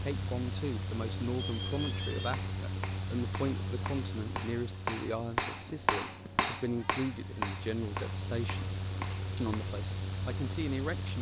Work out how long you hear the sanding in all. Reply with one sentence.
You can't hear the sanding here.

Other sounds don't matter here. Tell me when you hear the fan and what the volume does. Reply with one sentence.
You can hear the fan from 0.0 to 11.1 s, getting quieter then louder.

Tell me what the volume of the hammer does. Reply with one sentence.
The loudness of the hammer goes up, then down.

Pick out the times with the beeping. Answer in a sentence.
The beeping can be heard from 1.4 to 2.4 s.